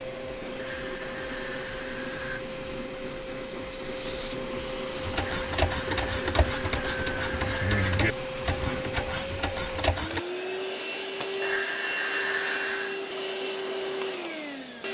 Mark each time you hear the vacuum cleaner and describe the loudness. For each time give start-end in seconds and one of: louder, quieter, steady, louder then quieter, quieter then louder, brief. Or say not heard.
0.0-14.8 steady.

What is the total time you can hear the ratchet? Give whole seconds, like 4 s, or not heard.
5 s.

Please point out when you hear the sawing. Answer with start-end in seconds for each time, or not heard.
0.6-2.5, 5.2-8.0, 11.4-13.0.